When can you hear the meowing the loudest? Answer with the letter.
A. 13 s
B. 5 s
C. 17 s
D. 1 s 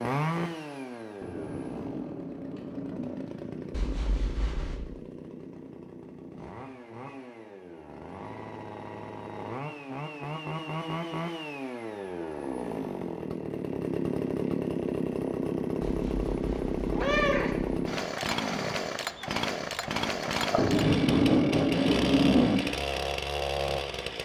C.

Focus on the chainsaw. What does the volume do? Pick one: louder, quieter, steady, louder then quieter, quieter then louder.
louder.